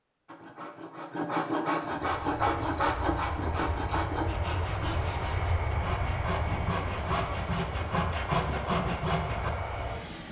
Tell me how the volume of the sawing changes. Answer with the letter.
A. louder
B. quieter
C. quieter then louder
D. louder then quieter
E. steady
C.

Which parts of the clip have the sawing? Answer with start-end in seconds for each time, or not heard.
0.2-9.5.